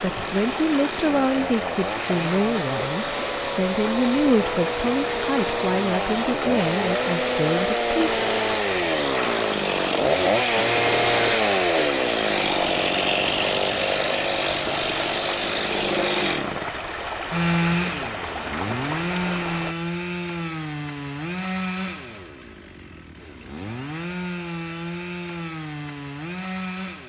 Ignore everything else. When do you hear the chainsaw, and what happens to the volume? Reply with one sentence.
The chainsaw can be heard from 0.0 to 27.0 s, getting louder then quieter.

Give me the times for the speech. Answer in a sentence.
You can hear the speech from 0.0 to 8.0 s.